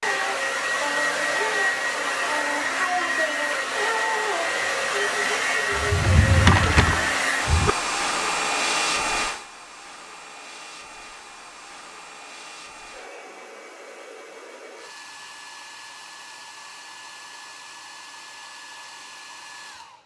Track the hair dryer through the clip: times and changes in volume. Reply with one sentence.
You can hear the hair dryer from 0.0 to 20.0 s, getting quieter.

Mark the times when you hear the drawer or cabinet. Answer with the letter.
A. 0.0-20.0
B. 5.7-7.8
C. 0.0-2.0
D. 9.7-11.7
B.